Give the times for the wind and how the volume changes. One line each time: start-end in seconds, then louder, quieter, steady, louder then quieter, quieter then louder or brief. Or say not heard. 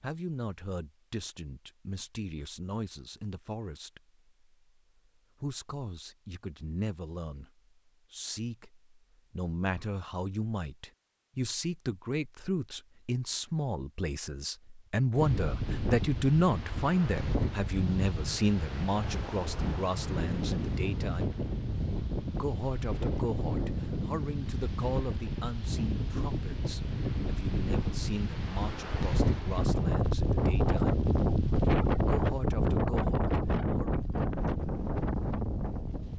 15.2-36.1 louder.